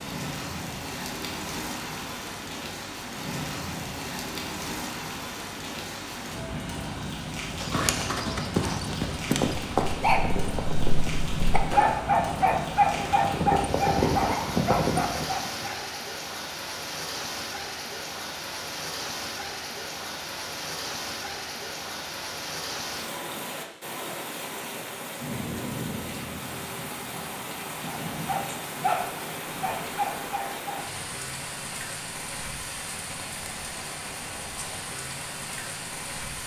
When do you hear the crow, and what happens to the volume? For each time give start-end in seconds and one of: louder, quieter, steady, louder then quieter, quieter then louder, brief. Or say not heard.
not heard.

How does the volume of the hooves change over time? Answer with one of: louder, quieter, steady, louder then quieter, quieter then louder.
quieter then louder.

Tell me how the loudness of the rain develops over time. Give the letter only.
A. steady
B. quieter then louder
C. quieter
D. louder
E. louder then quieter
A.